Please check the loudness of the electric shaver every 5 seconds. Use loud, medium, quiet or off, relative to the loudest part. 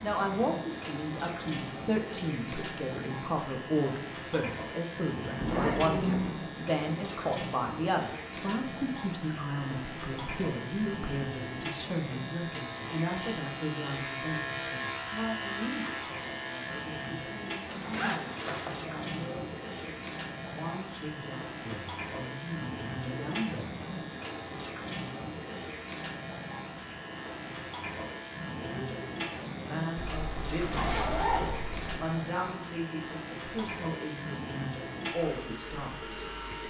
medium, medium, loud, loud, medium, medium, medium, medium.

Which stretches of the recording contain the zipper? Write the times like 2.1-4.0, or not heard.
5.4-6.3, 17.6-18.8, 29.9-32.0.